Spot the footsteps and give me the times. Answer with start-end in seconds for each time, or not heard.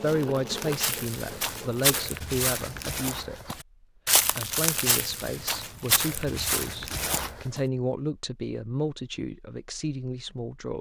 0.0-7.6.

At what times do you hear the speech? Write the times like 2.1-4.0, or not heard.
0.0-3.5, 4.3-10.7.